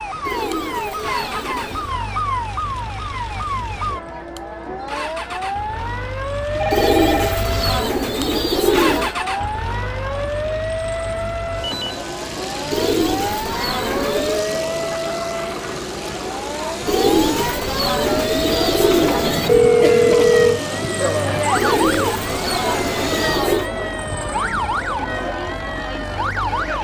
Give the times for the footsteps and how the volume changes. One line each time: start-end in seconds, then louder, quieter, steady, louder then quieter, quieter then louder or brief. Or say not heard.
not heard.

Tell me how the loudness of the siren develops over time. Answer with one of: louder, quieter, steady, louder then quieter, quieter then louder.
steady.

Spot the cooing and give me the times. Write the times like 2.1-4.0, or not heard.
0.2-1.9, 6.7-9.2, 12.7-14.4, 16.9-19.6, 21.6-23.7.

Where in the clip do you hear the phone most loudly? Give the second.
20 s.